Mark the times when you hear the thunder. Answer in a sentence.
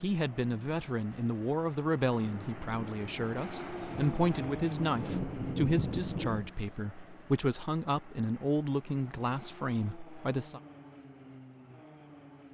The thunder can be heard from 2.1 to 6.5 s.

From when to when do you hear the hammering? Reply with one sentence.
You can't hear the hammering here.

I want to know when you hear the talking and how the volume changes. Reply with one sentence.
The talking can be heard from 0.0 to 10.6 s, at a steady volume.